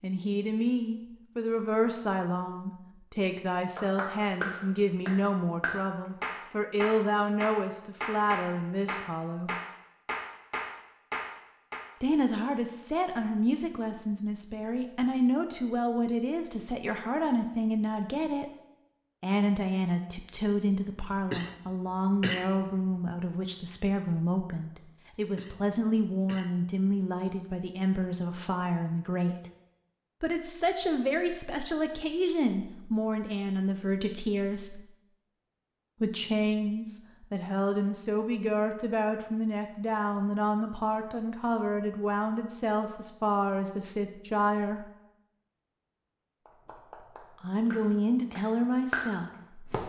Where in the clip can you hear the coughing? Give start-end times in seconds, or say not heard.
21.1-22.9, 25.1-26.6.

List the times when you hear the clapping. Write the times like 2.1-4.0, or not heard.
3.8-11.8, 46.5-49.8.